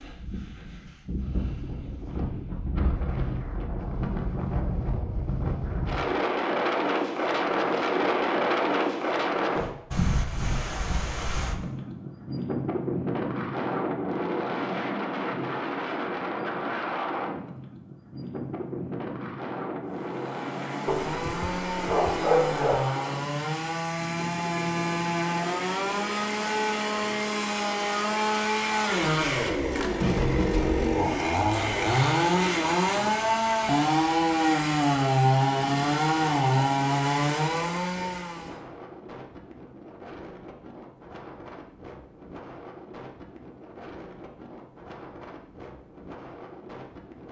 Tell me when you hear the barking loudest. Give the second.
22 s.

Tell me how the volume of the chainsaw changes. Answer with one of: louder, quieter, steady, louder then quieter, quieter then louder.
louder.